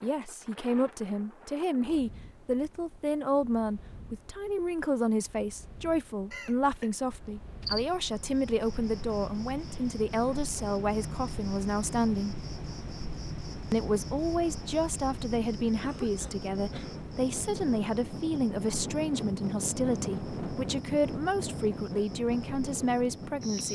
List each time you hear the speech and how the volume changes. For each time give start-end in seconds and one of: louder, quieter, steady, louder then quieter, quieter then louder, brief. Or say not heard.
0.0-12.4 steady
13.7-23.7 steady.